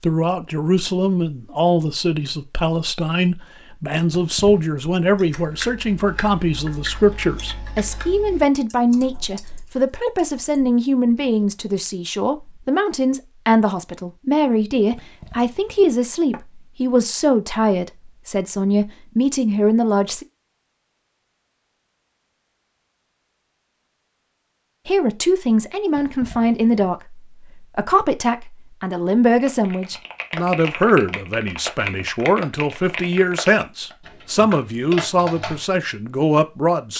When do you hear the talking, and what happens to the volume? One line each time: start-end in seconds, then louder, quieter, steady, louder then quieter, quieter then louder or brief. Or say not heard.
0.0-20.2 steady
24.9-36.9 steady.